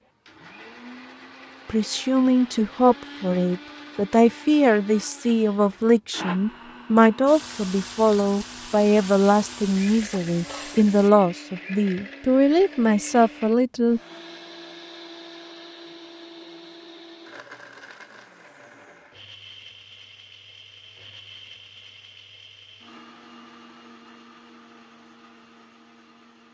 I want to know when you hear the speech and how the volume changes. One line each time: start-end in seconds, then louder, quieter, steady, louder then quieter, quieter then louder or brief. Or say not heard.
1.6-14.0 steady.